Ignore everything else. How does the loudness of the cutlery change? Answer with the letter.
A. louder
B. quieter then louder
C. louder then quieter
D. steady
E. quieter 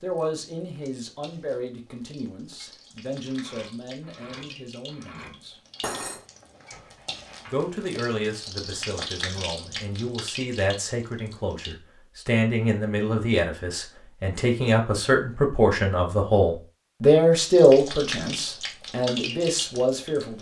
C.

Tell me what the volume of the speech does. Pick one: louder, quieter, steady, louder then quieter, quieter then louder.
louder.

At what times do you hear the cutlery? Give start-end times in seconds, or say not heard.
2.5-7.7.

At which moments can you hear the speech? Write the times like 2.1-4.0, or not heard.
0.0-5.5, 7.5-20.3.